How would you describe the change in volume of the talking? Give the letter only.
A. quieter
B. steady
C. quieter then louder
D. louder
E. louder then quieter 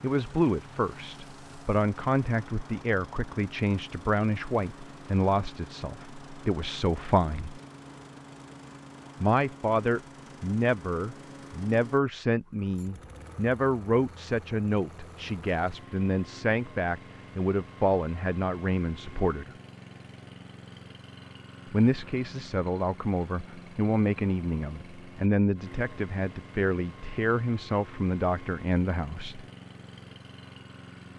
B.